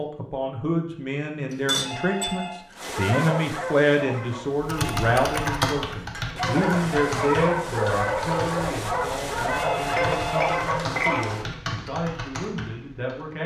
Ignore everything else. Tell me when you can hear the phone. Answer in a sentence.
You can hear the phone from 1.8 to 2.6 s, from 4.8 to 5.5 s and from 9.5 to 11.4 s.